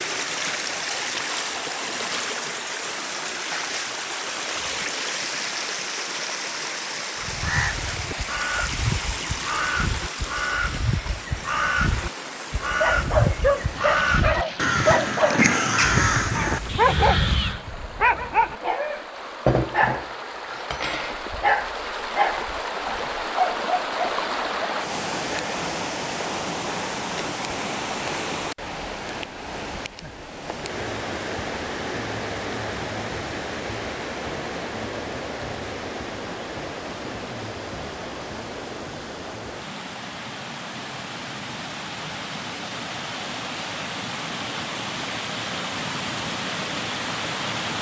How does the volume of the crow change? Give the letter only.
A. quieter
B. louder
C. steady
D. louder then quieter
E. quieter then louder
B.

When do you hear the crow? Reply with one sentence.
The crow can be heard from 7.2 to 17.6 s.